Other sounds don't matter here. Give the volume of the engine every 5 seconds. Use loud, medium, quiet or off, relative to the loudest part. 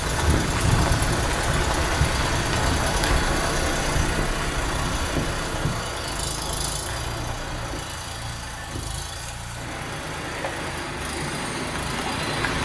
loud, medium, medium.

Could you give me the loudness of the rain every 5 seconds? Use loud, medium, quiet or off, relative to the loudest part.
loud, medium, loud.